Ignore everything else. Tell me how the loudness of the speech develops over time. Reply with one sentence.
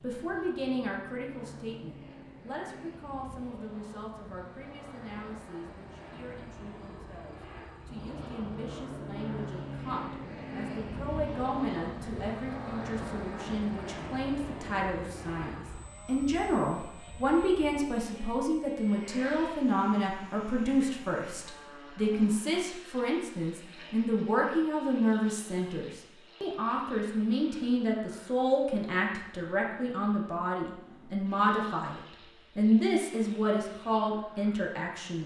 The volume of the speech goes up.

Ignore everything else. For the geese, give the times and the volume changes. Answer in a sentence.
You can't hear the geese here.